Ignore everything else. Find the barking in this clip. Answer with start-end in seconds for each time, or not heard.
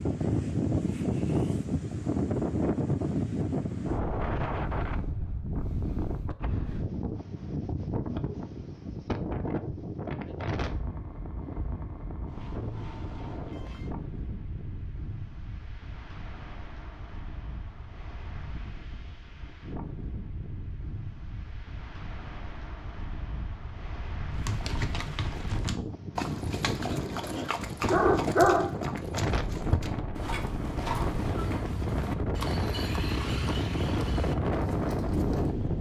26.9-28.8.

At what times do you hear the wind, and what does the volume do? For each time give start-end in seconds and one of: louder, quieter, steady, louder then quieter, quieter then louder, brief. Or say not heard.
0.0-35.7 quieter then louder.